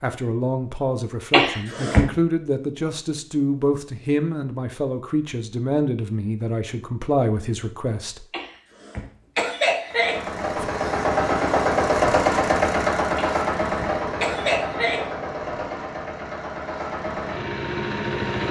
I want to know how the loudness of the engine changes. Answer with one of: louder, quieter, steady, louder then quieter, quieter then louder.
quieter.